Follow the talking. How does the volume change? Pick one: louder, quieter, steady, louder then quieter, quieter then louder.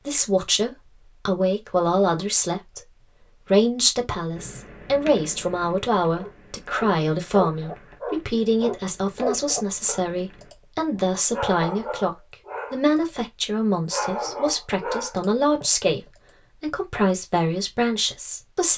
steady.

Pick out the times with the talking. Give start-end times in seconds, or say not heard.
0.0-18.7.